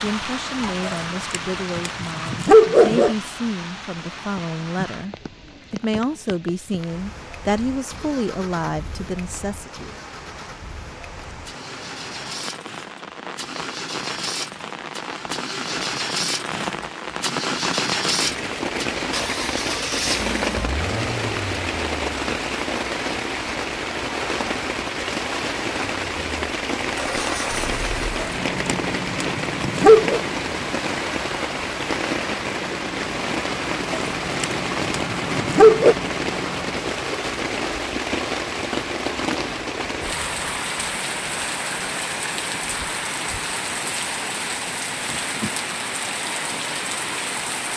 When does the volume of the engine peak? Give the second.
18 s.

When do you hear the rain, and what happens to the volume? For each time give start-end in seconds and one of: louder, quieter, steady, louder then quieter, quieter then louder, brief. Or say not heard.
0.0-47.7 louder.